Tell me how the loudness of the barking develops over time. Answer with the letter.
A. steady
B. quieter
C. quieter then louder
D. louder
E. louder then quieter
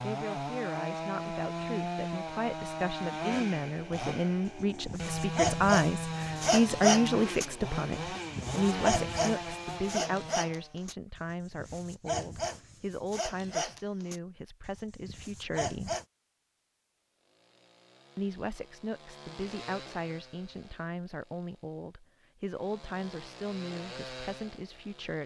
B.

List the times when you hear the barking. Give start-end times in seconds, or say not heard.
4.5-16.1.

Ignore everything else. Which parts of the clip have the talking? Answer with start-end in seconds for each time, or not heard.
0.0-15.9, 18.1-25.2.